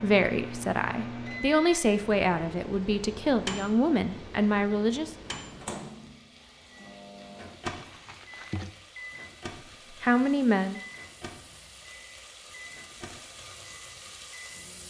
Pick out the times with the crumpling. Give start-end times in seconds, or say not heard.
7.6-8.8.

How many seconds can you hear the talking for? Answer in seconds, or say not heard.
6 s.